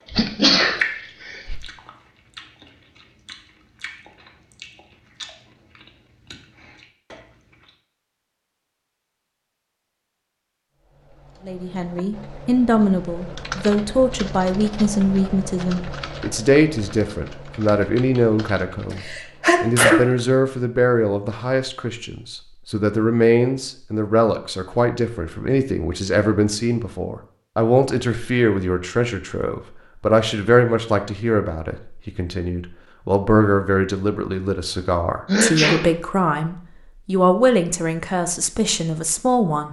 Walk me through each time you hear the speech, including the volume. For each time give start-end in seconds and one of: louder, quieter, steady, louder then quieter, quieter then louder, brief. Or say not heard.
11.4-39.6 steady.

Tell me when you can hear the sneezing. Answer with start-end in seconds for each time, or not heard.
0.1-1.6, 18.9-20.0, 35.2-35.9.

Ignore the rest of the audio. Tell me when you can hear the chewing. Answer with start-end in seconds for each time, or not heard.
0.0-7.7.